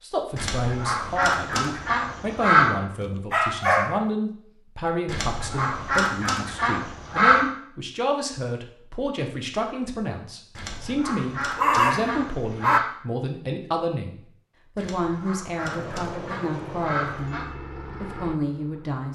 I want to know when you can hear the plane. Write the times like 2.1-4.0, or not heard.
15.6-19.1.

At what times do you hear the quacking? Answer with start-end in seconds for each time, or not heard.
0.3-2.7, 5.0-7.5, 10.6-12.8, 14.8-17.4.